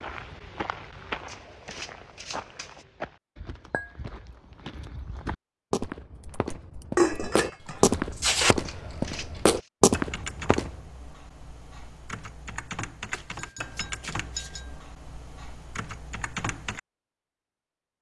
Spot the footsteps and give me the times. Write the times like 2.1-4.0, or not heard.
0.0-10.8.